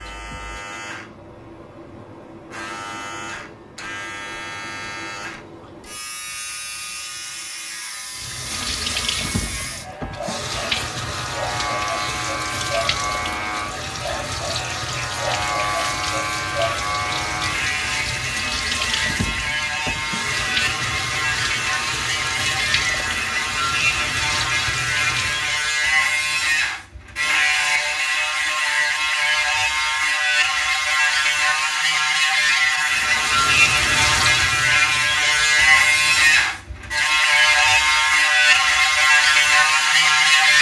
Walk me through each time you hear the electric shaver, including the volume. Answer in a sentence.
You can hear the electric shaver from 0.0 to 40.5 s, getting louder.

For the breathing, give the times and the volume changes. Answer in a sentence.
The breathing can't be heard in this clip.